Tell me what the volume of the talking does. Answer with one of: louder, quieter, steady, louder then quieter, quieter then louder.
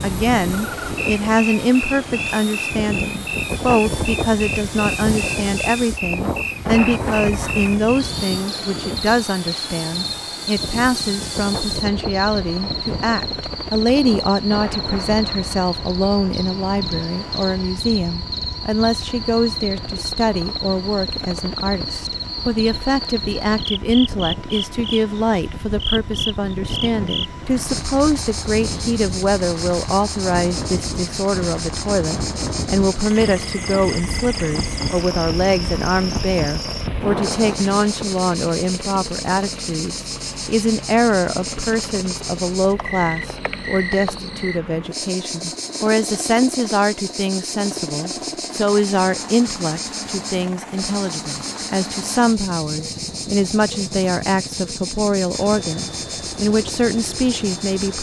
steady.